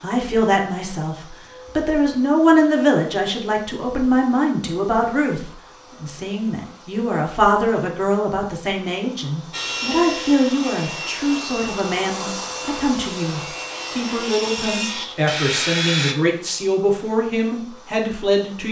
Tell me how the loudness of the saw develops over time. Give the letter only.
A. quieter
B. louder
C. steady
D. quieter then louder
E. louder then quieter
D.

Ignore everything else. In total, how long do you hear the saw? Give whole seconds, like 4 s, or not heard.
7 s.